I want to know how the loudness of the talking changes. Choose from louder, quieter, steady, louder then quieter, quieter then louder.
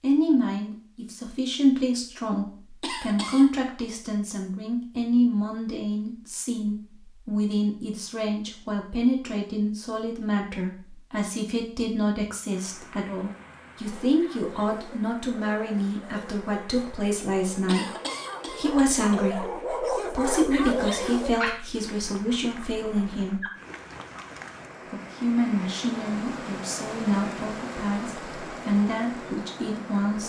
steady.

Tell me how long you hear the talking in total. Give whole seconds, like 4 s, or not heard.
29 s.